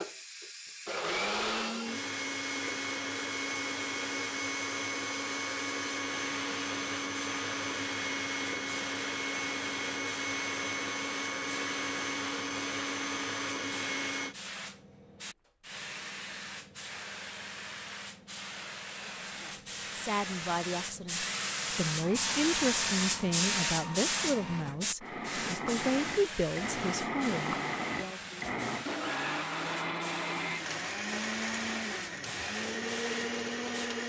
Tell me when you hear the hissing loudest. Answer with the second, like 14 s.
23 s.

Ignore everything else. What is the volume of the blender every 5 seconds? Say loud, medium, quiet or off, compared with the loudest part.
loud, loud, loud, off, medium, loud, loud.